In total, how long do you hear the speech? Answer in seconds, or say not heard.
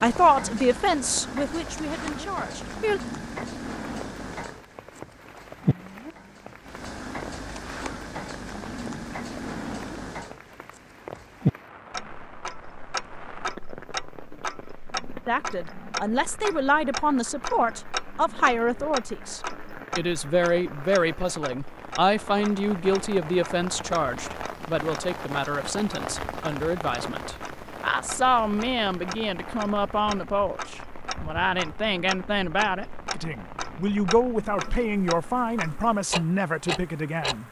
25 s.